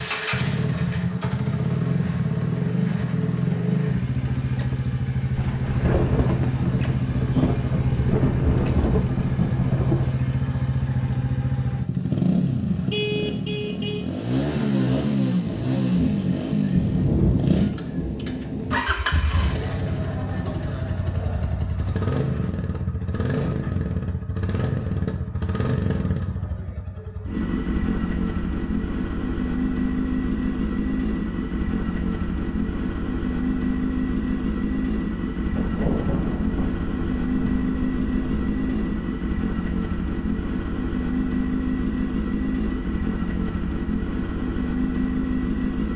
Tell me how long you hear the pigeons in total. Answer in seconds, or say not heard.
not heard.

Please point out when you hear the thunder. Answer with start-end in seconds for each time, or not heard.
5.3-10.2, 15.4-18.9, 35.5-38.9.